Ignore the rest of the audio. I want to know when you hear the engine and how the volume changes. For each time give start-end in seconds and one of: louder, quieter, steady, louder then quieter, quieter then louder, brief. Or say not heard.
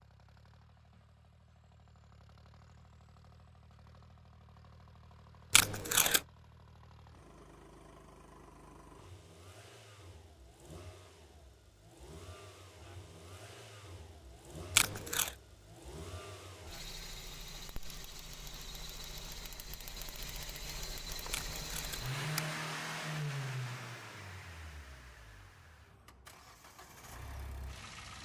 0.0-28.2 louder.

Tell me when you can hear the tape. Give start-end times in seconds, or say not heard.
5.5-6.2, 14.8-15.3, 21.3-22.5.